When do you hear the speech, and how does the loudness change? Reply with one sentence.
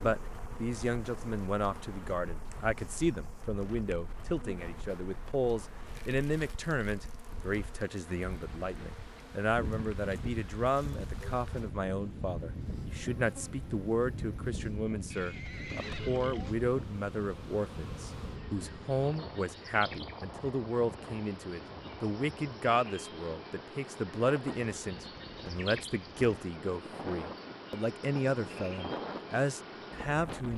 You can hear the speech from 0.0 to 30.5 s, at a steady volume.